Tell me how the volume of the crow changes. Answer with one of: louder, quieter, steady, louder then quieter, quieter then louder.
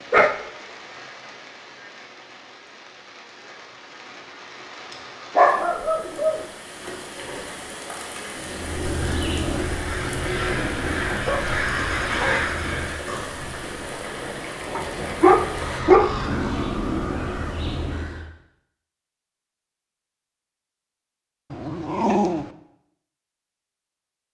steady.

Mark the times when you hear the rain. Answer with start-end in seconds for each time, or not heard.
0.0-15.8.